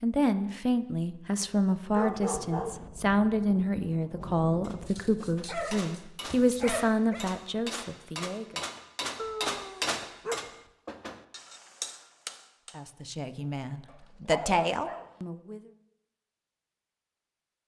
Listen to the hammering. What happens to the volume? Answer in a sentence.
The volume of the hammering goes up, then down.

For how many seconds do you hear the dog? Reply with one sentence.
The dog can be heard for 6 seconds in total.